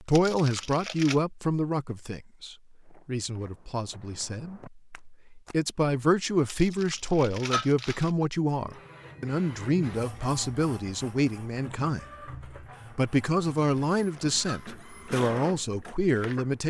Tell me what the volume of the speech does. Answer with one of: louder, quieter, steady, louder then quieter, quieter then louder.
steady.